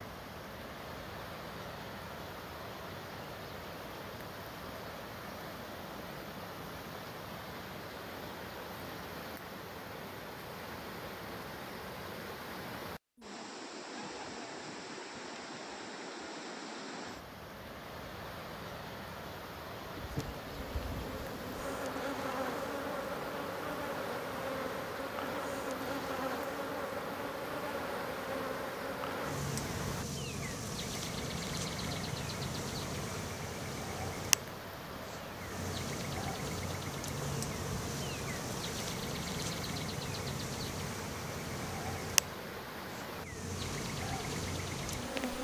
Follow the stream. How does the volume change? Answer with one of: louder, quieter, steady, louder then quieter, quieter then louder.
steady.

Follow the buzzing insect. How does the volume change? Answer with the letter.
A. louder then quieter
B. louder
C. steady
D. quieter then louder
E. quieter
C.